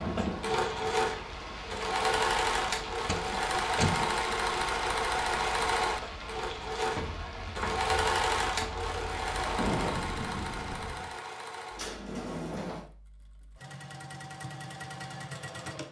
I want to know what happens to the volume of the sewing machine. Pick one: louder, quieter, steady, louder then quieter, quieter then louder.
quieter.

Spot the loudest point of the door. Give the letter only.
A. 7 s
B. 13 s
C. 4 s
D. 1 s
C.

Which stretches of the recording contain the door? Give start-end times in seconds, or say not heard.
3.0-4.0, 11.8-12.8.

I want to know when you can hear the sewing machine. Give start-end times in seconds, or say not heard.
0.0-15.8.